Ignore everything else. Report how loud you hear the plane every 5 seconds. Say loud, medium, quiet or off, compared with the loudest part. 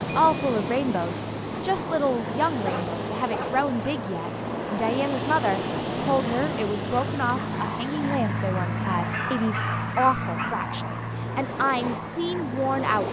medium, loud, loud.